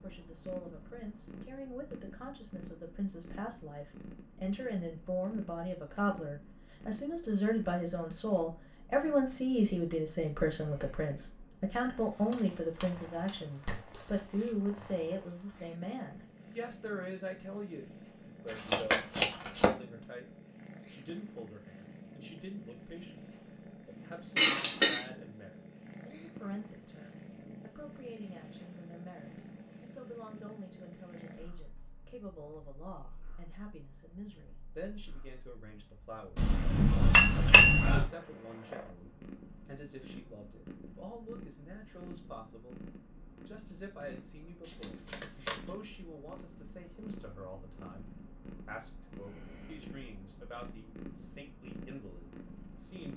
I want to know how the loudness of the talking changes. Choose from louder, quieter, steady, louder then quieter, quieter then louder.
quieter.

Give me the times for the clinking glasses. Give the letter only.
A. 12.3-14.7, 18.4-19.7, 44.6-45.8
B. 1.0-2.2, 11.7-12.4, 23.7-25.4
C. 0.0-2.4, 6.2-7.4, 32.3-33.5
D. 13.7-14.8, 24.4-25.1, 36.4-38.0
D.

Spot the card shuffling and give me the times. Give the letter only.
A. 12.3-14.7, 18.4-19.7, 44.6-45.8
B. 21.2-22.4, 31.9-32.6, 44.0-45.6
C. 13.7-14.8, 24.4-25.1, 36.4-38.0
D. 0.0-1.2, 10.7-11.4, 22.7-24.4
A.